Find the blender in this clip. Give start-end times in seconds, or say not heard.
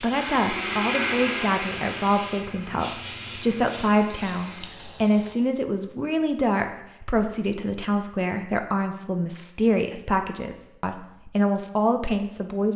0.1-4.8.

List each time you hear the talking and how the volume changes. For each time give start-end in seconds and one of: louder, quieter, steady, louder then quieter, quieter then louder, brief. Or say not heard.
0.0-12.7 steady.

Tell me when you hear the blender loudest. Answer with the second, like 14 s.
1 s.